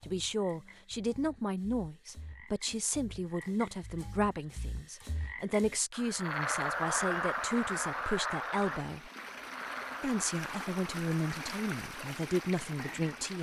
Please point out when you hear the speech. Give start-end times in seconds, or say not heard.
0.1-9.1, 10.0-13.3.